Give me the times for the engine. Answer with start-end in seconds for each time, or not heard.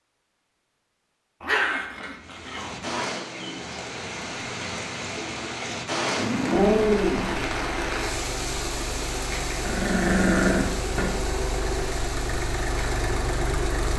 6.7-13.9.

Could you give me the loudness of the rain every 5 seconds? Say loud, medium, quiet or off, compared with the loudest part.
loud, loud, medium.